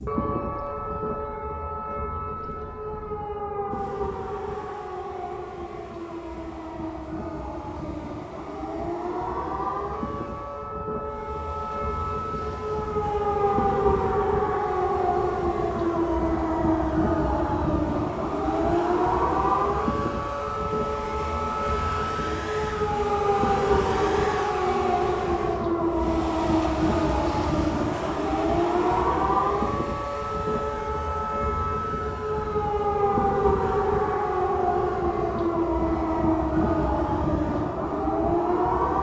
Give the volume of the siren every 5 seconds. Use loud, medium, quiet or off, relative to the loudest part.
medium, medium, loud, loud, loud, loud, loud, loud.